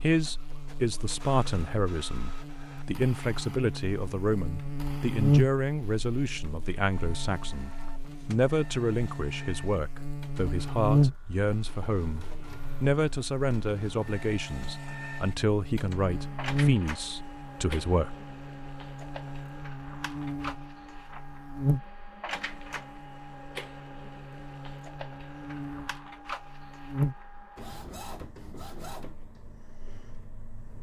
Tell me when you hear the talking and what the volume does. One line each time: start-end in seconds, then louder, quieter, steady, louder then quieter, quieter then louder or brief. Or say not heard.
0.0-18.2 steady.